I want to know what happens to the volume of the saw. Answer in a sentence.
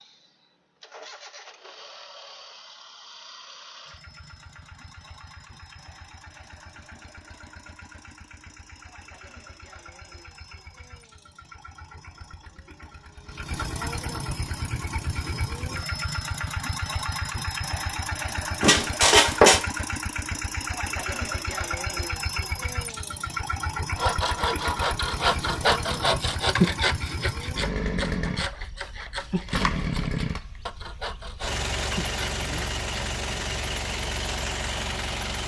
The volume of the saw goes down.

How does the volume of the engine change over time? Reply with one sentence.
The loudness of the engine goes up.